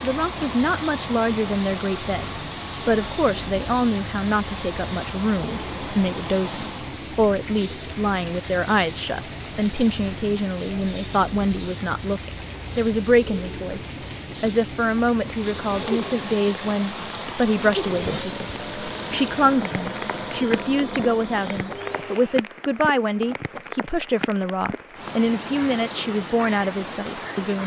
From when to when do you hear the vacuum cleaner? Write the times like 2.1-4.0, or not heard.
0.0-7.1, 15.2-22.4.